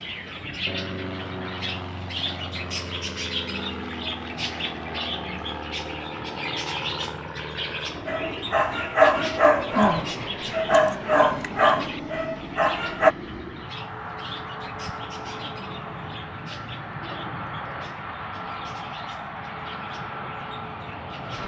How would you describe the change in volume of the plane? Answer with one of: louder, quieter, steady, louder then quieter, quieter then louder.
steady.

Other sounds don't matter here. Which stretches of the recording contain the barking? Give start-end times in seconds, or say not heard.
8.1-13.2.